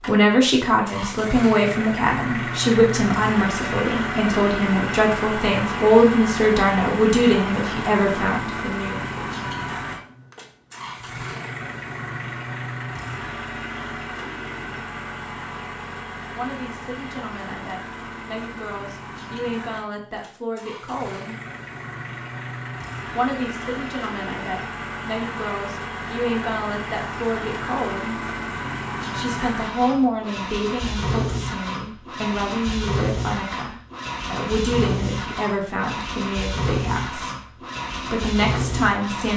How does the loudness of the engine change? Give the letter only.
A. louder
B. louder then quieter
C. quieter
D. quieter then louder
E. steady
D.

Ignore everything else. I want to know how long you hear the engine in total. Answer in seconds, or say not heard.
39 s.